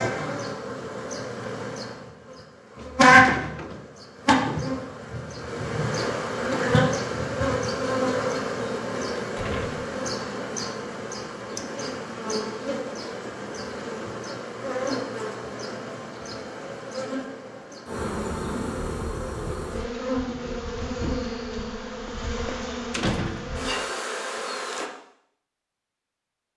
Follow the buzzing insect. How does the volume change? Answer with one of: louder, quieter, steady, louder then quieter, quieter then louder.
quieter.